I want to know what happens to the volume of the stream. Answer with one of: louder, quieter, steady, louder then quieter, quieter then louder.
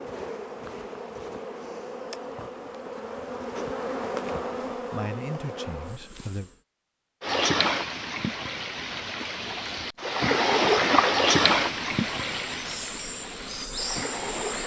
louder then quieter.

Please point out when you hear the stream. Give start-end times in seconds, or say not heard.
7.2-14.6.